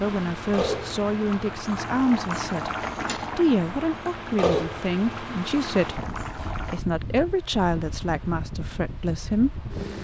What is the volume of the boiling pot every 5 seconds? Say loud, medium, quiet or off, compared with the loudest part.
loud, medium.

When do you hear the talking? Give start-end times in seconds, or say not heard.
0.0-2.7, 3.4-9.7.